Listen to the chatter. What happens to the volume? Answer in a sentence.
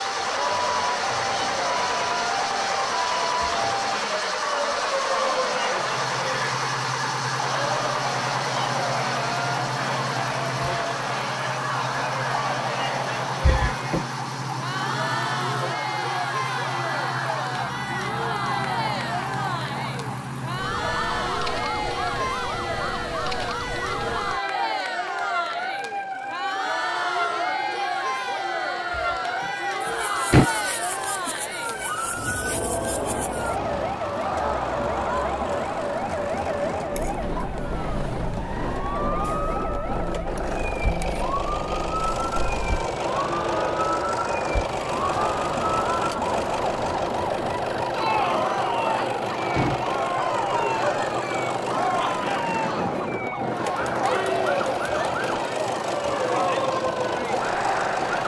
The volume of the chatter stays about the same.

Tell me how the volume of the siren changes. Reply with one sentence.
The volume of the siren stays about the same.